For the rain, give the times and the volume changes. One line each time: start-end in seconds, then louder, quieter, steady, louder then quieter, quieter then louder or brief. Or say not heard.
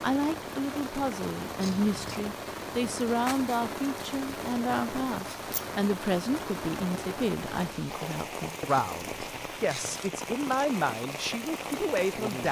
0.0-12.4 steady.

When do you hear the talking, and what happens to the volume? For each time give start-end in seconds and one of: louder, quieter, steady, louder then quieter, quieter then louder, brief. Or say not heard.
0.0-12.4 steady.